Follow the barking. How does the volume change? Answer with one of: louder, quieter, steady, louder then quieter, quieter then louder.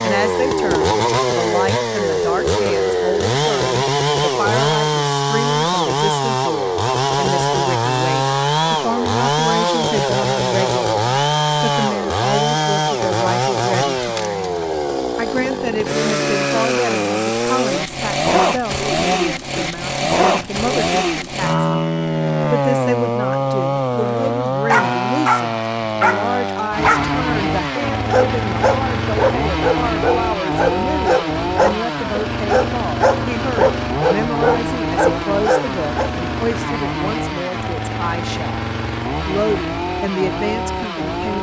steady.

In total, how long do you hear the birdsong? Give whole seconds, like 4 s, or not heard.
not heard.